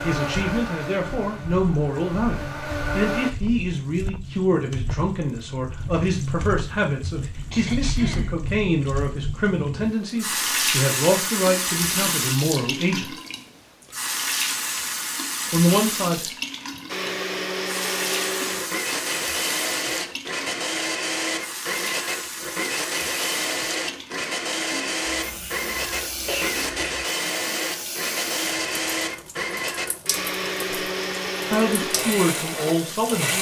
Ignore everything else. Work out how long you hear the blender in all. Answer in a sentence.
The blender can be heard for 20 seconds in total.